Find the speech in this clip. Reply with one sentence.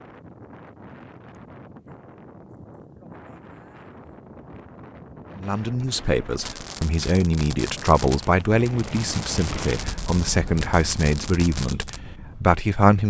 The speech can be heard from 5.3 to 13.0 s.